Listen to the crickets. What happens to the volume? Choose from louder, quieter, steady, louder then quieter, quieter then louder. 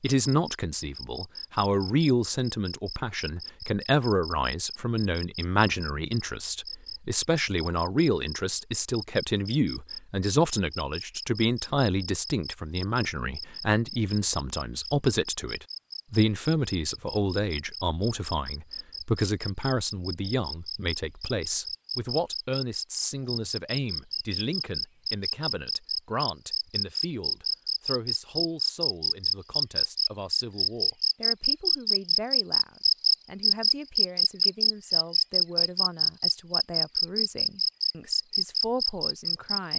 louder.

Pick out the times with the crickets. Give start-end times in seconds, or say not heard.
0.1-39.7.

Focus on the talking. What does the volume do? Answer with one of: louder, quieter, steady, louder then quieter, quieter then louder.
quieter.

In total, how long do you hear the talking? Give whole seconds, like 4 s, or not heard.
40 s.